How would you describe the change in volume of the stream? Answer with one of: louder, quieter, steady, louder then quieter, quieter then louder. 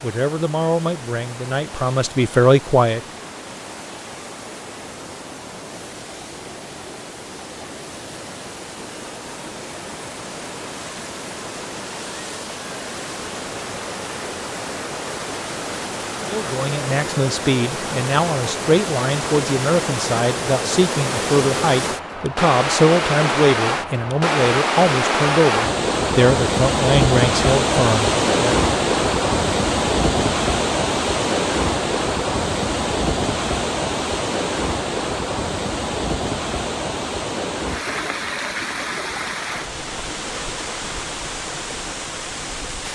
louder then quieter.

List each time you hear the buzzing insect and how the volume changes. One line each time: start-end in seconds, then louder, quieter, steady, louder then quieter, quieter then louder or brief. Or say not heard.
not heard.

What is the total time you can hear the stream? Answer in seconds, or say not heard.
43 s.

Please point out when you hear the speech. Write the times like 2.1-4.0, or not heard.
0.0-3.0, 16.2-28.6.